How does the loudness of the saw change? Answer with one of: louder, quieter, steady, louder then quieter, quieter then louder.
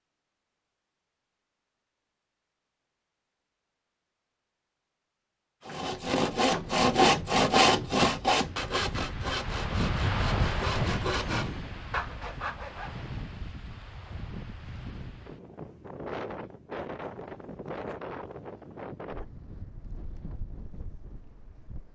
quieter.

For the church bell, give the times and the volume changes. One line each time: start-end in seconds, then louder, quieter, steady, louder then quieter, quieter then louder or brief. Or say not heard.
not heard.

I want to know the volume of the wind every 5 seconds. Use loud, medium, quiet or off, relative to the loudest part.
off, loud, loud, medium, quiet.